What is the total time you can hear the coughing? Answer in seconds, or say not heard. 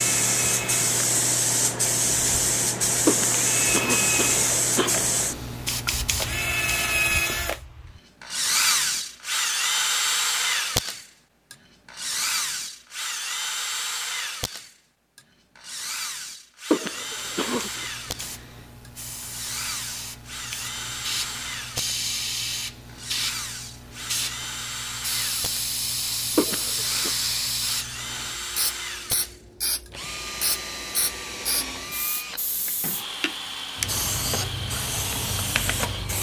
4 s.